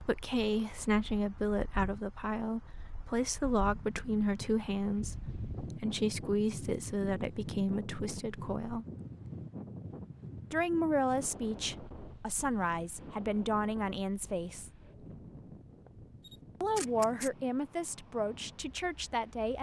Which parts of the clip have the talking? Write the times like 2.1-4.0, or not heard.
0.0-8.8, 10.5-14.7, 16.6-19.5.